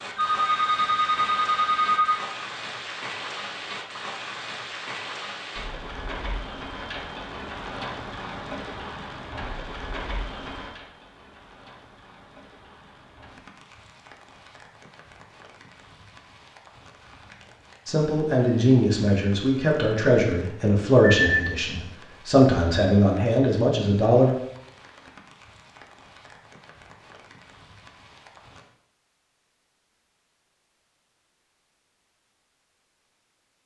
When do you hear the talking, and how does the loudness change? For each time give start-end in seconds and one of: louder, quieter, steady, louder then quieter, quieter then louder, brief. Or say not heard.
17.9-24.4 steady.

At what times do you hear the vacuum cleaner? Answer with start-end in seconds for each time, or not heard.
not heard.